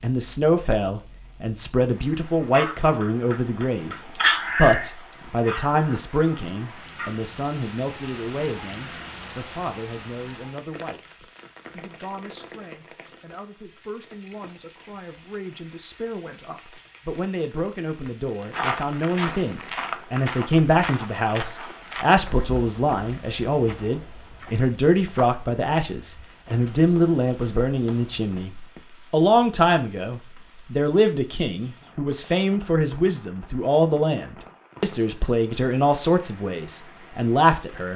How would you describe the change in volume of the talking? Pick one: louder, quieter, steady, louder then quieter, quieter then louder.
quieter then louder.